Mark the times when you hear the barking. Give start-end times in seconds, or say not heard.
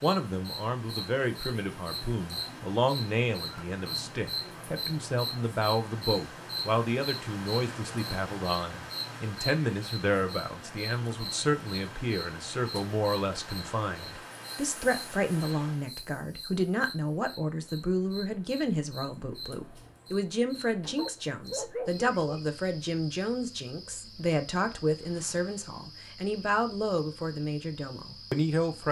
20.9-22.4.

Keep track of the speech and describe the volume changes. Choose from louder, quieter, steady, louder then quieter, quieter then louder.
steady.